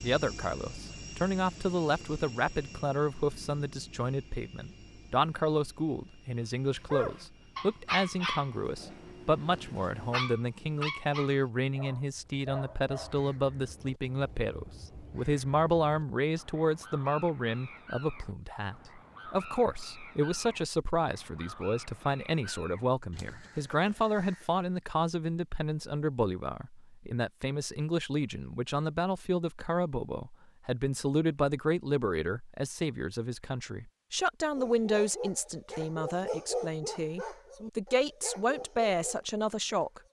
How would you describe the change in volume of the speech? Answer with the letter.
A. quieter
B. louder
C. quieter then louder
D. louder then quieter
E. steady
E.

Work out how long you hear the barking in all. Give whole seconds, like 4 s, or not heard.
12 s.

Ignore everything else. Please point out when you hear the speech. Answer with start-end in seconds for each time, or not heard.
0.0-40.0.